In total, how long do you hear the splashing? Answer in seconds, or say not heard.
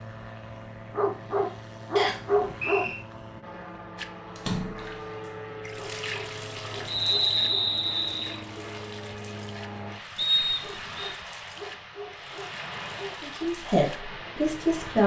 10 s.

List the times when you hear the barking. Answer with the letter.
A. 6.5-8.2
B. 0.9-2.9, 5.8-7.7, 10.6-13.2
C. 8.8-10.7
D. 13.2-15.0
B.